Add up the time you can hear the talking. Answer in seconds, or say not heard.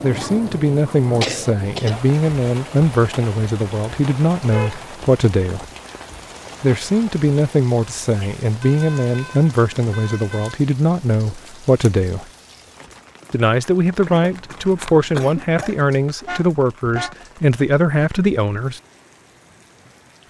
17 s.